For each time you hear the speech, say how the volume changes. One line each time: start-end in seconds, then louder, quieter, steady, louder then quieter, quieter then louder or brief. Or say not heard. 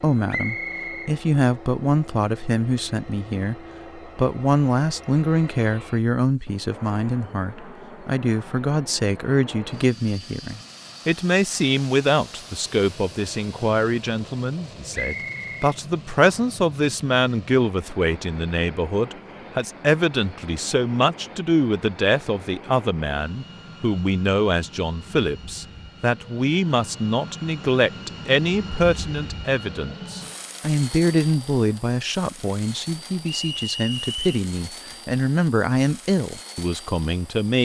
0.0-37.6 steady.